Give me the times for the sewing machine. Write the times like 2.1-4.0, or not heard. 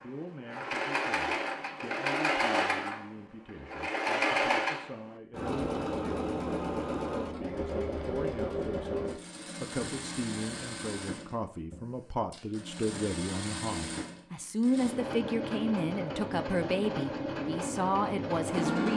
0.0-18.9.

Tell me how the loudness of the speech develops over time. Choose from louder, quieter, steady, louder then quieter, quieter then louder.
louder.